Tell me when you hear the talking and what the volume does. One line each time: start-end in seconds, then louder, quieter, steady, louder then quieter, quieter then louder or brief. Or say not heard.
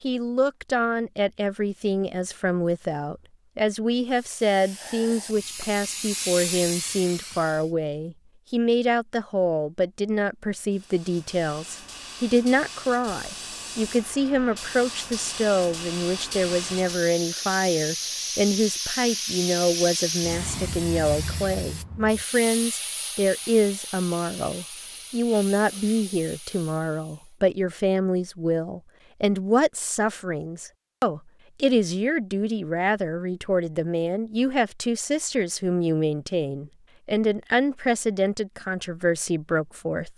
0.0-40.1 steady.